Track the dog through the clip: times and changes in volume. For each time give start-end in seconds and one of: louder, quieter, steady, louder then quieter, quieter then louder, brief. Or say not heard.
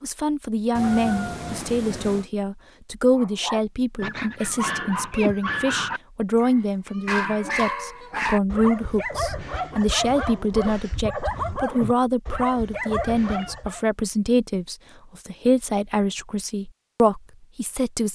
3.1-13.8 steady.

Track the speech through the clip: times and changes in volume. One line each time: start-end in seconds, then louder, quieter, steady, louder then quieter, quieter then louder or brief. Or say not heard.
0.0-18.1 steady.